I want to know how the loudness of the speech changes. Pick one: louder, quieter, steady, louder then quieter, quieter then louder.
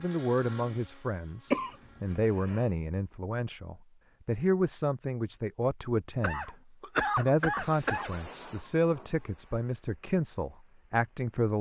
steady.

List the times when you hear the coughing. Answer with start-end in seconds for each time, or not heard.
1.5-2.6, 6.2-8.2.